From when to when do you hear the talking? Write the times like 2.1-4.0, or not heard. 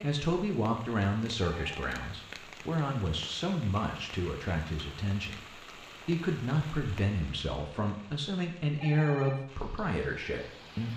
0.0-10.9.